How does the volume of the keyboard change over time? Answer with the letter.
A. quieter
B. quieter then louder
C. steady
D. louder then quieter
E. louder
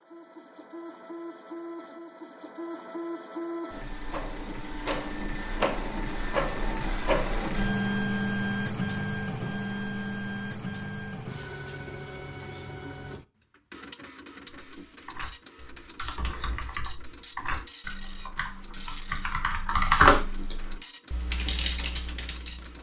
D.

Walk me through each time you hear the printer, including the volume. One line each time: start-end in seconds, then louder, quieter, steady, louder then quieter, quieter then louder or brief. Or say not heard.
0.0-22.7 louder then quieter.